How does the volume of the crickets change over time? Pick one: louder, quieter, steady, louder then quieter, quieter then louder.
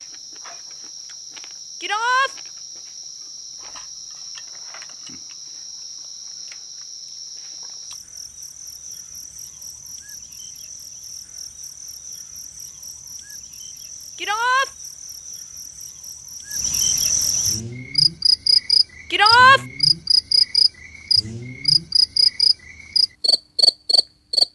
louder.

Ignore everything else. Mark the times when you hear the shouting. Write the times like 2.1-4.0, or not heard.
1.8-2.3, 14.2-14.7, 19.1-19.6.